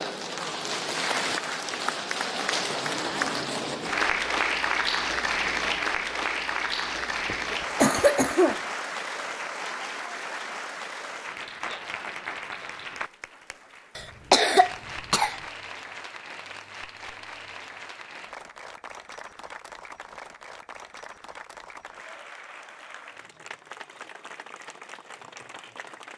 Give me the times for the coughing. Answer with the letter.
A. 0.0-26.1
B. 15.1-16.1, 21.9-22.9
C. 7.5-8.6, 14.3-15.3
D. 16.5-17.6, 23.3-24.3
C.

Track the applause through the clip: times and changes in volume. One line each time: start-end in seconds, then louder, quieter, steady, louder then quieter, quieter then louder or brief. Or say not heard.
0.0-26.1 quieter.